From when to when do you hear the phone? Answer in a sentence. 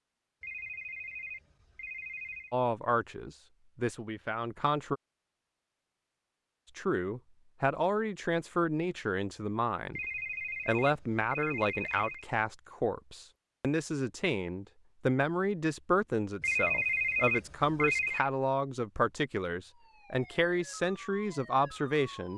The phone can be heard from 0.4 to 2.5 s, from 9.9 to 12.2 s and from 16.4 to 18.3 s.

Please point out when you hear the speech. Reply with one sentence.
You can hear the speech from 2.5 to 5.0 s, from 6.8 to 10.0 s and from 10.7 to 22.3 s.